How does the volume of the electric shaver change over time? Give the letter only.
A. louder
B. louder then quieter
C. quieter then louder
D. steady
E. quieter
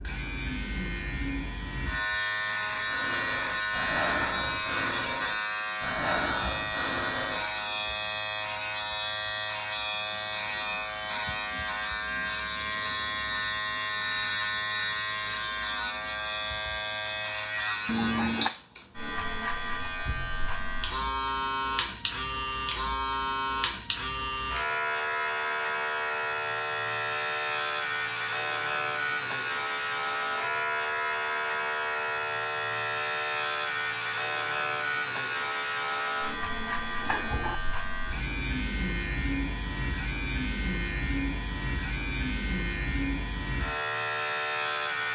D.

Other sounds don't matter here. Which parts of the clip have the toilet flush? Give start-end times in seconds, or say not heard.
17.9-18.5, 36.5-37.6.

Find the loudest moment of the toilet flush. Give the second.
18 s.